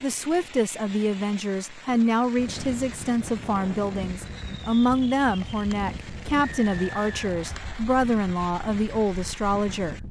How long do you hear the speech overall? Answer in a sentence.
The speech can be heard for 10 seconds in total.